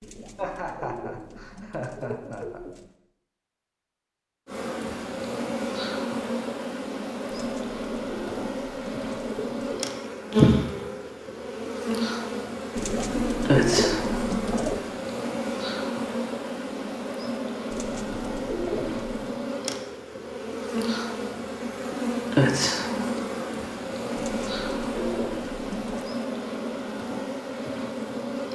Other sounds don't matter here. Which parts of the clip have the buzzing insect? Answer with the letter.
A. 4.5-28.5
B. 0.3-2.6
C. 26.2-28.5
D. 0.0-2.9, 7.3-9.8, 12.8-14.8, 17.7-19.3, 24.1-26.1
A.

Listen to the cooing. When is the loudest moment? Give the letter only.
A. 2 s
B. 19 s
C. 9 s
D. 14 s
D.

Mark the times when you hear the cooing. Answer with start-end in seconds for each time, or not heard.
0.0-2.9, 7.3-9.8, 12.8-14.8, 17.7-19.3, 24.1-26.1.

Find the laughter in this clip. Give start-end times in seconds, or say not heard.
0.3-2.6.